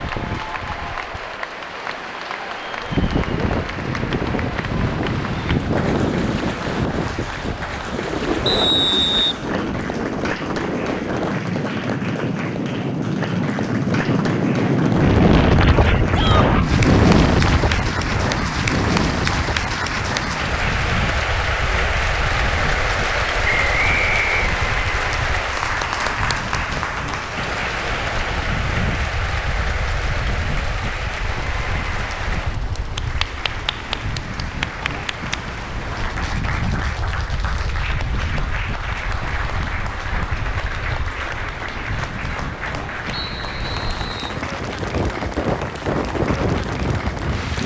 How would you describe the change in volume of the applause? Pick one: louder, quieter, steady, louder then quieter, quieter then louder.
louder then quieter.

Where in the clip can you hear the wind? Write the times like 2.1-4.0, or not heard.
0.0-47.6.